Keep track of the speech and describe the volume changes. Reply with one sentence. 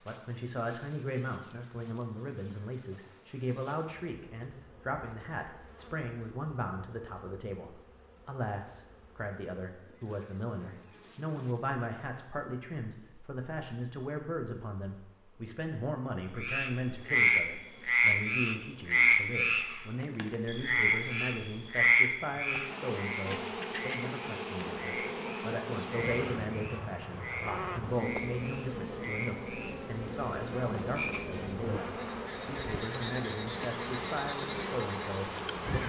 The volume of the speech stays about the same.